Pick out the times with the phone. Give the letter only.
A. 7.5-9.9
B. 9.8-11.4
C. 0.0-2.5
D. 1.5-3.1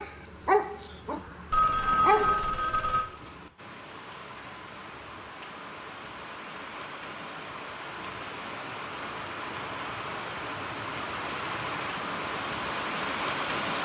D.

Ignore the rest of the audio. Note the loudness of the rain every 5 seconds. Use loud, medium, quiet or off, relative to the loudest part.
quiet, medium, loud.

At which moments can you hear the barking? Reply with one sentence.
You can hear the barking from 0.0 to 2.5 s.